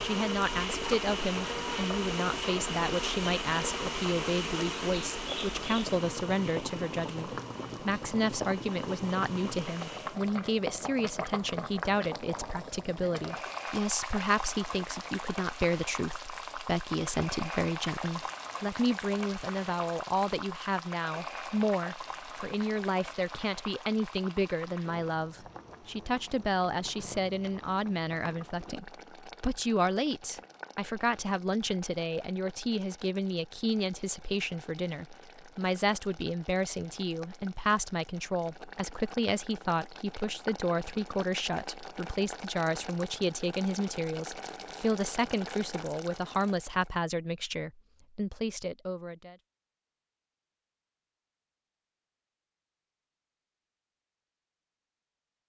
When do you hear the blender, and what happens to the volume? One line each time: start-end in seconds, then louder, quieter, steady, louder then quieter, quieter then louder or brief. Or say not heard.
0.0-10.2 quieter.